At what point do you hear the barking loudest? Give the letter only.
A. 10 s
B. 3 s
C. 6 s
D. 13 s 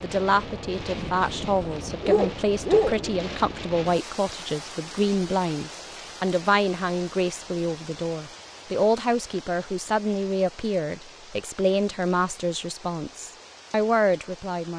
B.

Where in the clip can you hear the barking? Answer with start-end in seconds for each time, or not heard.
0.8-3.2.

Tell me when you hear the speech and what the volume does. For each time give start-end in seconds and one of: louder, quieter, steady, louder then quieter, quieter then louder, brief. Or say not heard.
0.0-14.7 steady.